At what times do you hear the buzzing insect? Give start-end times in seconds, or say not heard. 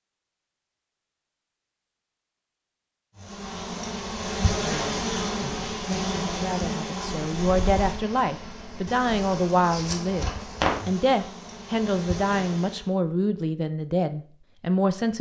3.2-12.9.